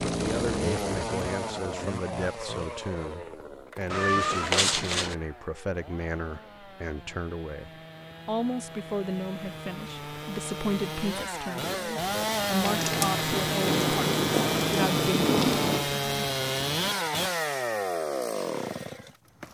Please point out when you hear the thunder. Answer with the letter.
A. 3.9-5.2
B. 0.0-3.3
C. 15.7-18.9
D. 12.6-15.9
D.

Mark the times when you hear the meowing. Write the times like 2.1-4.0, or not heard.
3.9-5.2.